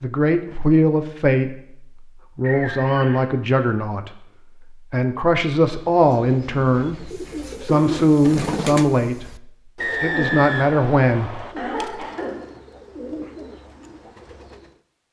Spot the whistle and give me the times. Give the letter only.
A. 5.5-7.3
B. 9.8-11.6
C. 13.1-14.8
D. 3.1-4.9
B.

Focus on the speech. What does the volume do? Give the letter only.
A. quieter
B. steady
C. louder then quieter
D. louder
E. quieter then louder
B.